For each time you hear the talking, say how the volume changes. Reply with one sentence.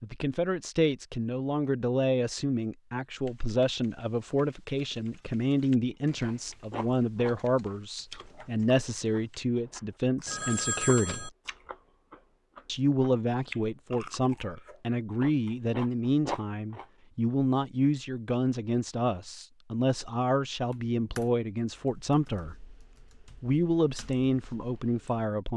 You can hear the talking from 0.0 to 11.3 s, at a steady volume; from 12.7 to 22.6 s, at a steady volume; and briefly from 23.4 to 25.5 s.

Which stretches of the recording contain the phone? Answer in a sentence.
The phone can be heard from 10.2 to 11.3 s.